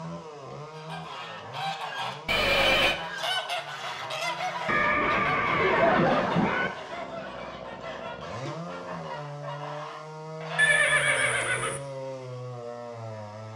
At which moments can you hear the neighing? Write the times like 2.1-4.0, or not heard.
2.2-3.0, 4.7-6.7, 10.6-11.8.